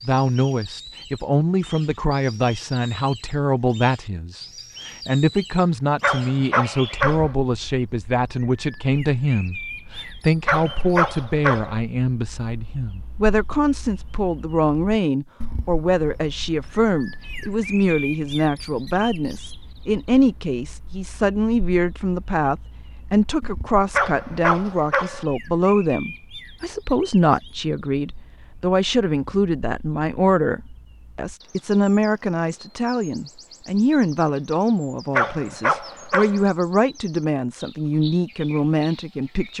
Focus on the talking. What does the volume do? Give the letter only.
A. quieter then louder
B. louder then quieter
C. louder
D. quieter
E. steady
E.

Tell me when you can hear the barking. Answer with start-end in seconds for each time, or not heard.
6.0-7.3, 10.4-11.8, 23.9-25.2, 35.1-36.5.